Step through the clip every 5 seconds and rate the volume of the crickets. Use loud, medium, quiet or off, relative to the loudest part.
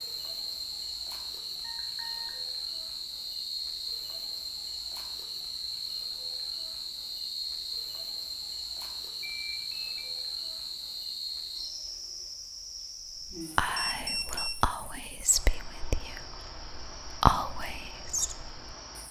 loud, loud, loud, medium.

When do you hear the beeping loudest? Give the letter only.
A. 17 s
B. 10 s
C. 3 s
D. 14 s
D.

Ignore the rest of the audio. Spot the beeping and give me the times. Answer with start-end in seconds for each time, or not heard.
1.6-2.4, 9.2-10.2, 13.8-14.6.